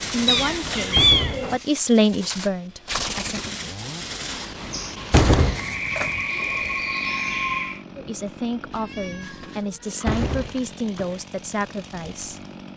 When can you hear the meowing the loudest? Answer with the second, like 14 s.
1 s.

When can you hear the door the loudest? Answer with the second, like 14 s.
5 s.